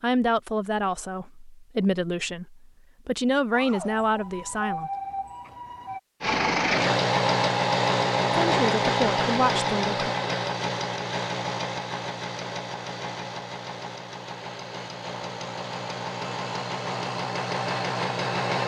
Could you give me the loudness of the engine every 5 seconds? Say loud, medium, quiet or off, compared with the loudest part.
off, loud, medium, medium.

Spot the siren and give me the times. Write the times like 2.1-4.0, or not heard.
3.5-6.0.